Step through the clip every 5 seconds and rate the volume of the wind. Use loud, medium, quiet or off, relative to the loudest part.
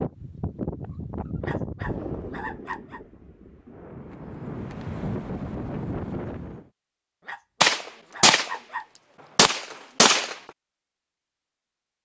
loud, loud, off.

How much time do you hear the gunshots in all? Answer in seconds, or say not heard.
3 s.